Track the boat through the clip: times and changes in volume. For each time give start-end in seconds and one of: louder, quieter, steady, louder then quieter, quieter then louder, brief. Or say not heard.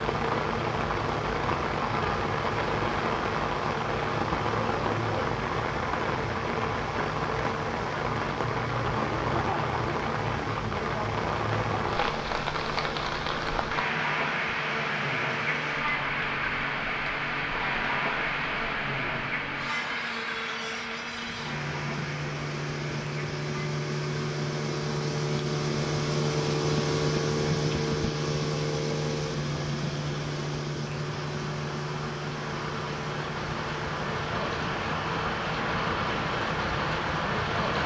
0.0-37.8 louder then quieter.